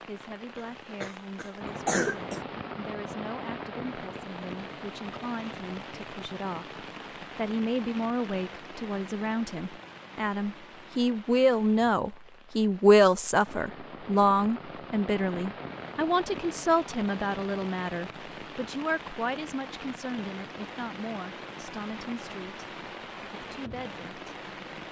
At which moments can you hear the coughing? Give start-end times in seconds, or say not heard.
0.6-2.5.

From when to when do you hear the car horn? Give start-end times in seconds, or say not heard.
not heard.